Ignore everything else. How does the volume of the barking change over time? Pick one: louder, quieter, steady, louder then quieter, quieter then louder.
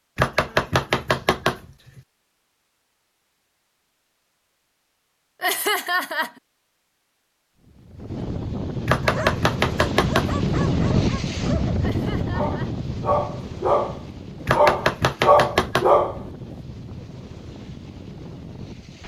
louder.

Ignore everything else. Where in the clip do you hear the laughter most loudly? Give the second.
6 s.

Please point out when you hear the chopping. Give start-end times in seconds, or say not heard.
0.1-2.0, 8.8-10.3, 14.4-15.9.